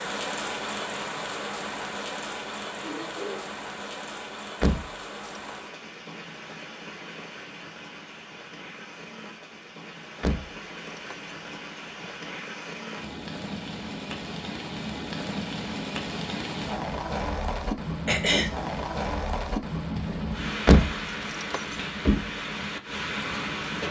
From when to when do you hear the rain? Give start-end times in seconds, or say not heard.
0.0-23.8.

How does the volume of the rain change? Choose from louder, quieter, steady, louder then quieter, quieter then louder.
quieter then louder.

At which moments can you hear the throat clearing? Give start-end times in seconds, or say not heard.
2.8-3.4, 18.1-18.5.